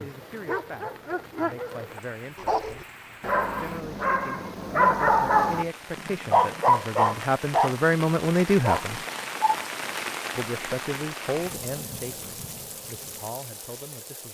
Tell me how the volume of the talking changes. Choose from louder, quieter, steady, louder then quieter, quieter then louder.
louder then quieter.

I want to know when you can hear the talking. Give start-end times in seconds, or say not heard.
0.0-9.0, 10.3-14.2.